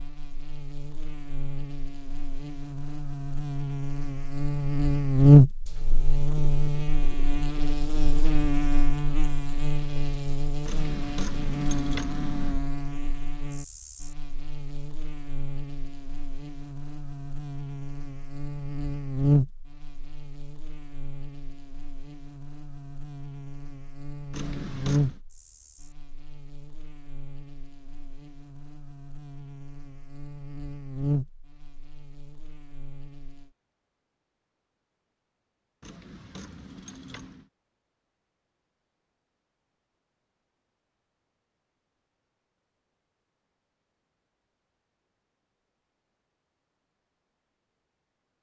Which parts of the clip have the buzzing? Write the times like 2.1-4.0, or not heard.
0.0-33.5.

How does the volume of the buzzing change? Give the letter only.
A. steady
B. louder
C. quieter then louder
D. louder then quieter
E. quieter
E.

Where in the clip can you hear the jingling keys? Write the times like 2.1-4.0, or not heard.
10.7-12.6, 24.3-25.2, 35.8-37.5.